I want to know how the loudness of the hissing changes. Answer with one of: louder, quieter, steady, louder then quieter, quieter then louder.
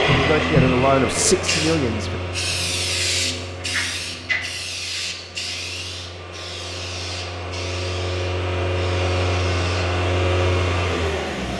quieter.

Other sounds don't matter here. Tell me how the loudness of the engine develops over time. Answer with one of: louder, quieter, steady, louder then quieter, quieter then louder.
quieter then louder.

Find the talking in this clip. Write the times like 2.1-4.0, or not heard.
0.1-2.2.